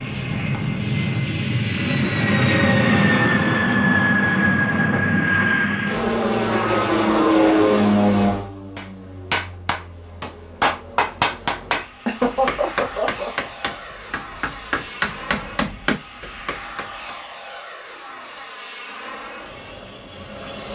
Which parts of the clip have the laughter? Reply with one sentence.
You can hear the laughter from 12.1 to 13.3 s.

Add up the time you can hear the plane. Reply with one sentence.
You can hear the plane for 21 seconds altogether.